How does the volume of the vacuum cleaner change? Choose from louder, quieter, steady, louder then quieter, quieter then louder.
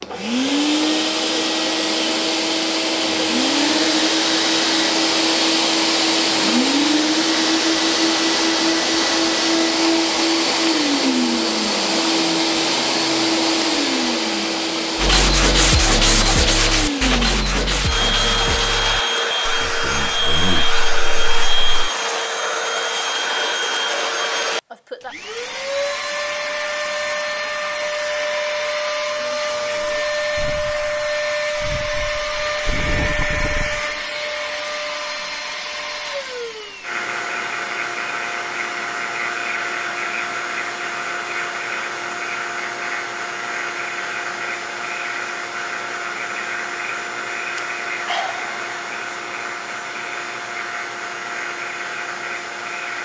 quieter.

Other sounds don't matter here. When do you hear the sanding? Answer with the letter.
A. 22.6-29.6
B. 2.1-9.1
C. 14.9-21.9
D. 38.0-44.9
C.